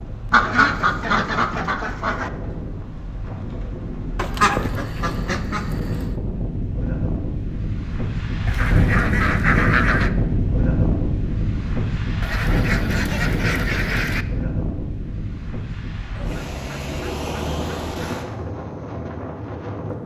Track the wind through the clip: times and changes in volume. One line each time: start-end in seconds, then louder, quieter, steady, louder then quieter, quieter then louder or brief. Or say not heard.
0.0-20.0 louder then quieter.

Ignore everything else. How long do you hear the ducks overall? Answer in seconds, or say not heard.
10 s.